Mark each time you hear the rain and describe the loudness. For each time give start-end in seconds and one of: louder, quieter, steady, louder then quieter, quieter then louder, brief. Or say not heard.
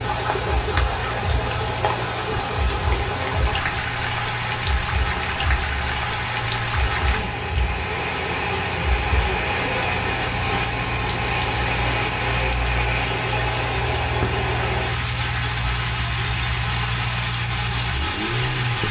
0.0-18.8 steady.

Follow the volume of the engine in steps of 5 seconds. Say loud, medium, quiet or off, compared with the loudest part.
medium, medium, loud, loud.